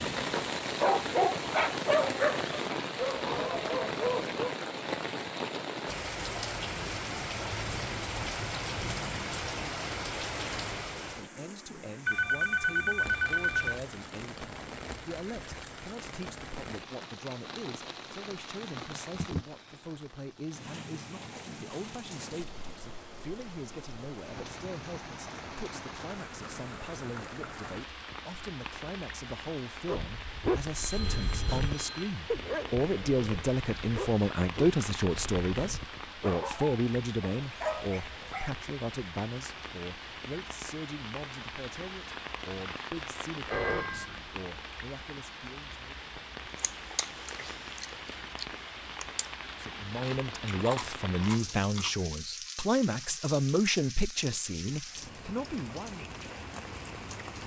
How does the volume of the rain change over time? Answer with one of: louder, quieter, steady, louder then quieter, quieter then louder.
quieter.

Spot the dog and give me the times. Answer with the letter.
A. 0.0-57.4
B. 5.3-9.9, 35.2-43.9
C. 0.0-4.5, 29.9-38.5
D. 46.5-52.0
C.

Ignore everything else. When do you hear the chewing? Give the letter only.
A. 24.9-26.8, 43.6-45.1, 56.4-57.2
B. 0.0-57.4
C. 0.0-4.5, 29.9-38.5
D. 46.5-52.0
D.